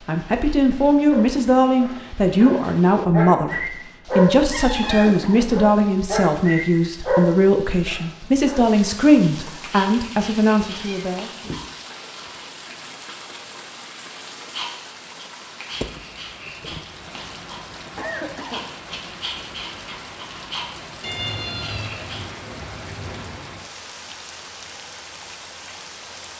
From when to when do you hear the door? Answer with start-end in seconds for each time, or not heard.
not heard.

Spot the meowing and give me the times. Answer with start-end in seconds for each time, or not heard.
4.5-5.3, 10.8-11.7, 21.0-23.6.